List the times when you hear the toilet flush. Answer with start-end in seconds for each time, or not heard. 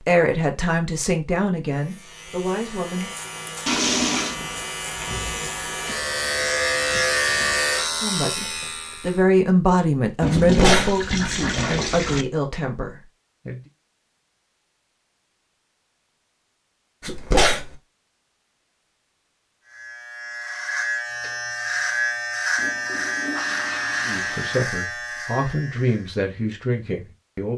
3.6-4.3, 10.2-12.2, 22.6-24.6.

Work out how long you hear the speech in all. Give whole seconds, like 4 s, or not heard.
12 s.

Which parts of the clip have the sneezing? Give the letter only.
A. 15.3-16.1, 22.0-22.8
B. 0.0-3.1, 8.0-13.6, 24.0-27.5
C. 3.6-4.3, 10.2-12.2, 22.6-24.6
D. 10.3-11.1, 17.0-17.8
D.